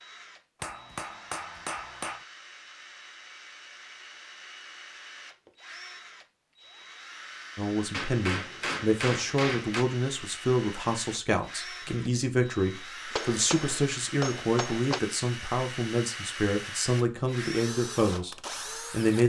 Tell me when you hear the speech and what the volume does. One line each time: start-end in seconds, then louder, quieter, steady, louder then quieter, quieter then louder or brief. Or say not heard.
7.5-19.2 steady.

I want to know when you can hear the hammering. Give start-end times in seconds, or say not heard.
0.6-2.2, 7.9-9.8, 13.1-15.0.